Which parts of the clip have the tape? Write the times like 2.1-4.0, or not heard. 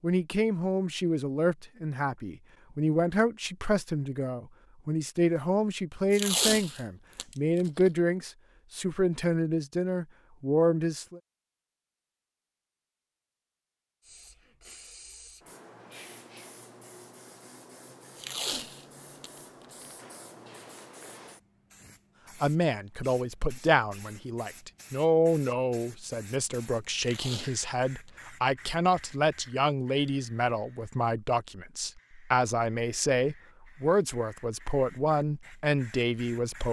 6.1-7.9, 18.1-19.9, 27.0-28.1.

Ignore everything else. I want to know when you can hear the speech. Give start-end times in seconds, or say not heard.
0.0-11.2, 22.4-36.6.